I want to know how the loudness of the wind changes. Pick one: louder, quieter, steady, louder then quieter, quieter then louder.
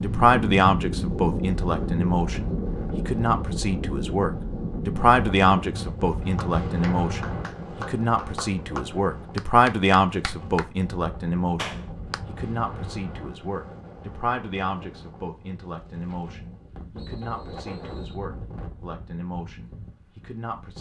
quieter.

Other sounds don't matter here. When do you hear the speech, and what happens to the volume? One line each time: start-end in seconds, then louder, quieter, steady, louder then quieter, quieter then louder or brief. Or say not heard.
0.0-20.7 quieter.